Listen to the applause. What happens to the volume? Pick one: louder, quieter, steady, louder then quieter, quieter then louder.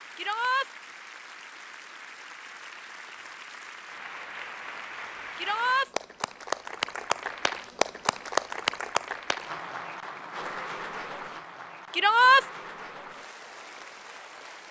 louder then quieter.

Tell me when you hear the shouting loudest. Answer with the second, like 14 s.
12 s.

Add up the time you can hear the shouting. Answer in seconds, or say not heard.
2 s.